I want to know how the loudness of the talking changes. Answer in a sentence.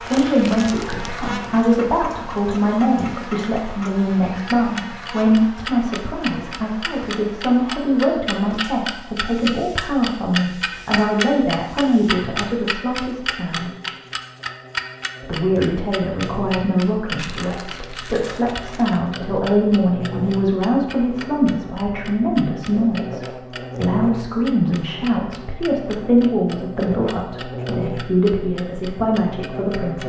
The loudness of the talking stays about the same.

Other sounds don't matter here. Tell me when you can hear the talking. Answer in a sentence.
The talking can be heard from 0.0 to 13.7 s and from 15.2 to 30.0 s.